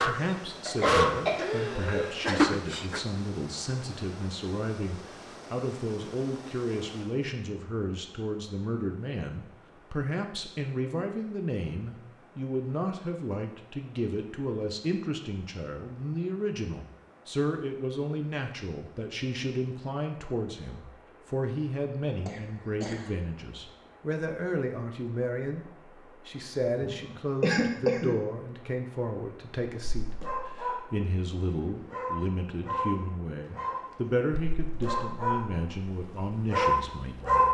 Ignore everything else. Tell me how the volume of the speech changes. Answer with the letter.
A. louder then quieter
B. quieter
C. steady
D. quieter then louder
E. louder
C.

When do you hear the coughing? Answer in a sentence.
The coughing can be heard from 0.7 to 2.4 s, from 22.2 to 23.2 s and from 26.8 to 28.2 s.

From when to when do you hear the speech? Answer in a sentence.
You can hear the speech from 0.0 to 37.4 s.